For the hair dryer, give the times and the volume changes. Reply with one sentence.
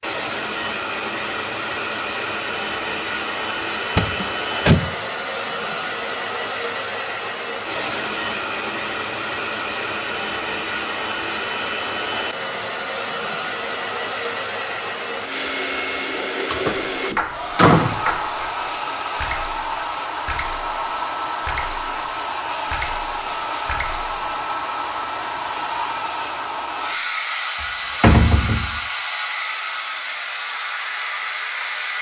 You can hear the hair dryer from 0.0 to 31.9 s, at a steady volume.